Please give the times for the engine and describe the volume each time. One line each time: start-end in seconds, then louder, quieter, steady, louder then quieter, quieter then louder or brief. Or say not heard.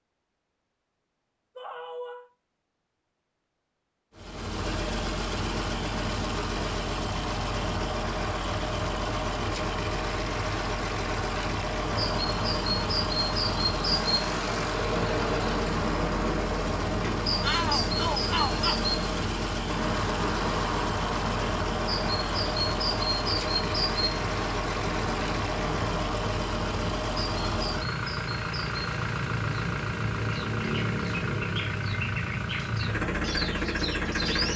4.2-34.5 steady.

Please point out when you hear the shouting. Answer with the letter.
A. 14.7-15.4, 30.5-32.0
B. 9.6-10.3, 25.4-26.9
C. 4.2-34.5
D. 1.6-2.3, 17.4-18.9
D.